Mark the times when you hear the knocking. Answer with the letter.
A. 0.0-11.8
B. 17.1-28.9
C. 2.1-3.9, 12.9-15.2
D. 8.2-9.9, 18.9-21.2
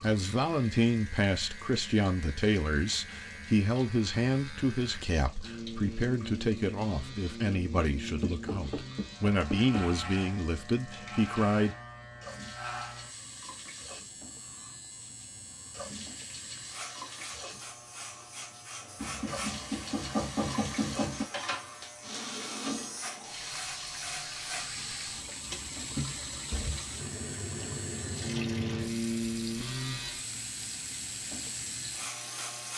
D.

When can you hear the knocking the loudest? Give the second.
20 s.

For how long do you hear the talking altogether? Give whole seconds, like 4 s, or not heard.
12 s.